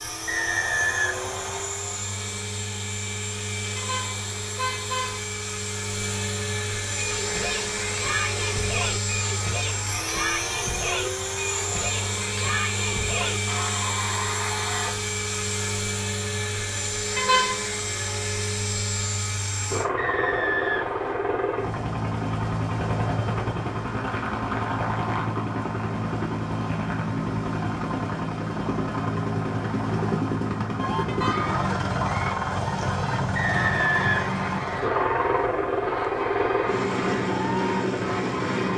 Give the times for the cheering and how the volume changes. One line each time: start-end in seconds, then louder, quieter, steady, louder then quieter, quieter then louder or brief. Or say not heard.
7.0-14.9 steady
30.8-38.7 steady.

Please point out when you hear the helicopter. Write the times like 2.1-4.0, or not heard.
0.0-38.7.